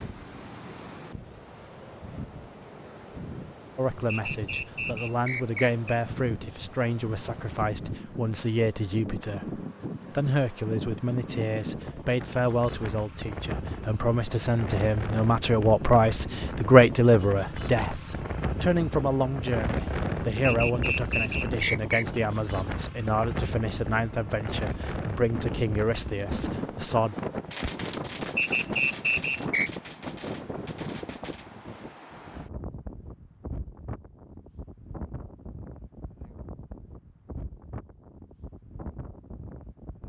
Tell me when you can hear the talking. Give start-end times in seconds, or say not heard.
3.8-27.1.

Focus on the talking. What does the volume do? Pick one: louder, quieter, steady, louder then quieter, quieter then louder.
louder then quieter.